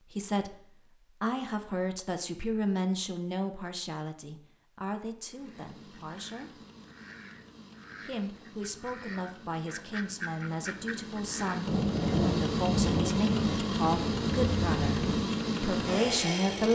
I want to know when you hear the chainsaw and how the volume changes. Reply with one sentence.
You can hear the chainsaw from 5.3 to 16.7 s, getting louder.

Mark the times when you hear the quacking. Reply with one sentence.
You can hear the quacking from 5.2 to 11.6 s.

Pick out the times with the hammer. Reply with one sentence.
The hammer can't be heard in this clip.